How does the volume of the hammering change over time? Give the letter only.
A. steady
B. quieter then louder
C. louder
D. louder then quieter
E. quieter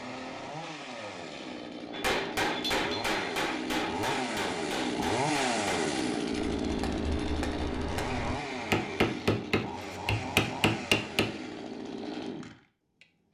B.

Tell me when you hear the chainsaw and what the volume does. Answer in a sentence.
You can hear the chainsaw from 0.0 to 13.1 s, getting louder then quieter.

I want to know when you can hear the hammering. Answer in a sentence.
You can hear the hammering from 1.9 to 11.3 s.